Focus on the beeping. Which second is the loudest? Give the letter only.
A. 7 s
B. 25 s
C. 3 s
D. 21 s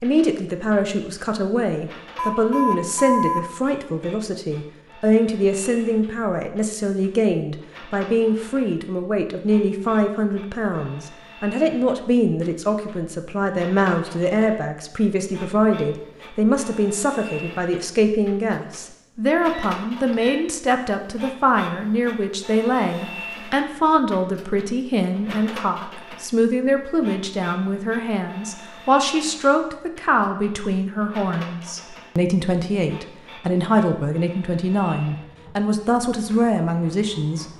C.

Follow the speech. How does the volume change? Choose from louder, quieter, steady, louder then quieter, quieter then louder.
steady.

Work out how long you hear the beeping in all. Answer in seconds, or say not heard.
2 s.